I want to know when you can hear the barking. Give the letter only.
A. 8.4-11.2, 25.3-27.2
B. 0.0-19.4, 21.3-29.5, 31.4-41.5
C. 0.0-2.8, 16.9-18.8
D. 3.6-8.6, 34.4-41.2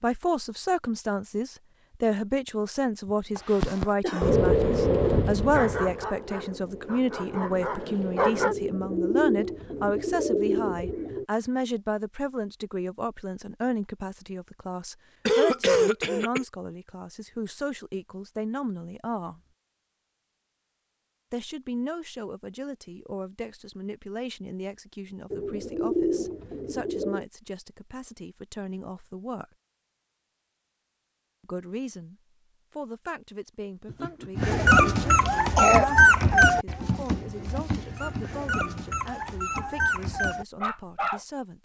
D.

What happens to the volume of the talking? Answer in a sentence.
The loudness of the talking goes down.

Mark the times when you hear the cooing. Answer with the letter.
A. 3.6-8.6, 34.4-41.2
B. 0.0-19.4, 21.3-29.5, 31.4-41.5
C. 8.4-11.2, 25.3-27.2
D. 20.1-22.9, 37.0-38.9
C.